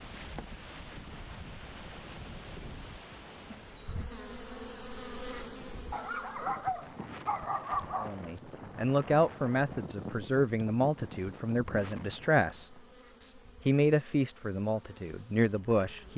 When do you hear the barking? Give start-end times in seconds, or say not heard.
5.9-8.2.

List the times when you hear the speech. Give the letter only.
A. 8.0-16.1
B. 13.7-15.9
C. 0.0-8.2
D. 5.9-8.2
A.